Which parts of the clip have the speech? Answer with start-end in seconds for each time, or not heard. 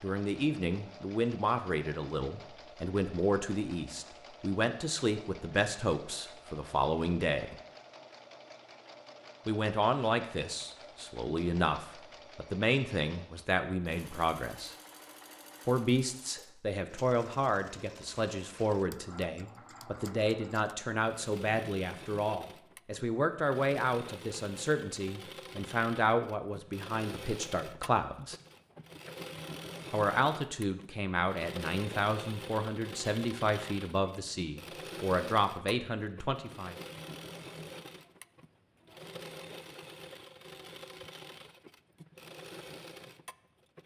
0.0-7.5, 9.4-14.8, 15.7-28.4, 29.9-36.8.